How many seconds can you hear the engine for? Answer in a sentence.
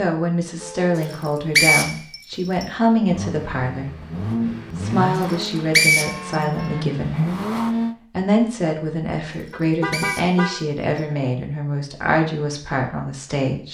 You can hear the engine for 5 seconds altogether.